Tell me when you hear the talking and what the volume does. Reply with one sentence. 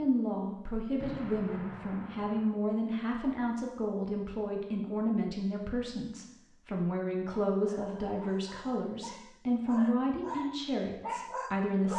You can hear the talking from 0.0 to 11.9 s, at a steady volume.